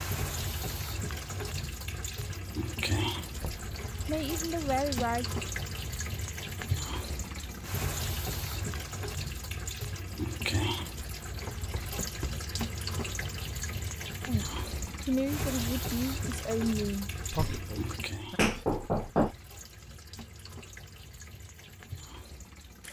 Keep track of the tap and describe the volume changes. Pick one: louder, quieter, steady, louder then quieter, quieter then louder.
quieter.